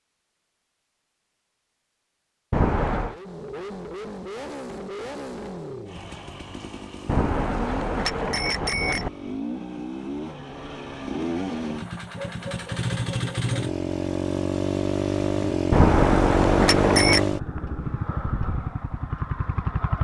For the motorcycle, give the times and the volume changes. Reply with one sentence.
The motorcycle can be heard from 3.0 to 20.0 s, getting louder.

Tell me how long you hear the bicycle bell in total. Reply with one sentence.
You can hear the bicycle bell for 4 seconds altogether.